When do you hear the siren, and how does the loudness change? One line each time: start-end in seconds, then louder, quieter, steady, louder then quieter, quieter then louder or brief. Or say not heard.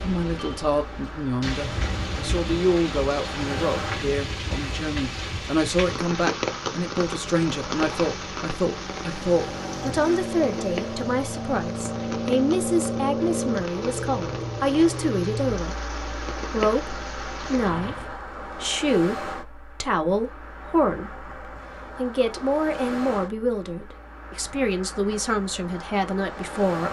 not heard.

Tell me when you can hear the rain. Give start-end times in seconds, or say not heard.
0.0-18.2.